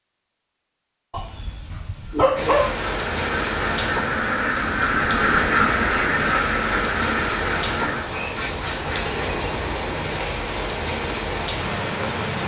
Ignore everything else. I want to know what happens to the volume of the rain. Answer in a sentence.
The volume of the rain stays about the same.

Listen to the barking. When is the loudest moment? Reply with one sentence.
The volume of the barking peaks at 2 seconds.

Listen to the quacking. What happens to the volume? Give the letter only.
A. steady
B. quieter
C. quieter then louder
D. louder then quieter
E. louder
D.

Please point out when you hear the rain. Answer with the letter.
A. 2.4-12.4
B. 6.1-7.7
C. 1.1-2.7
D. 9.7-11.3
A.